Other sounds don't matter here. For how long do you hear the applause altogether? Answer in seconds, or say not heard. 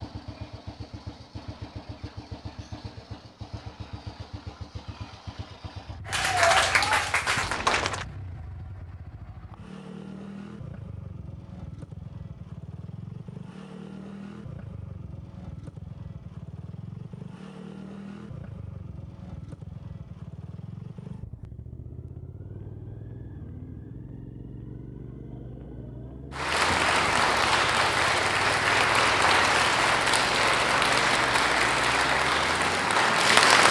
9 s.